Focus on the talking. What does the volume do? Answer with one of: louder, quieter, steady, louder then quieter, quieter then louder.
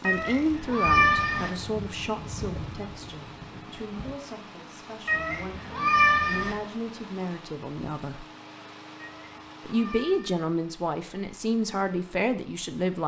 quieter then louder.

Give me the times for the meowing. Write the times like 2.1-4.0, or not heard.
0.0-1.5, 5.0-6.5, 8.9-10.4.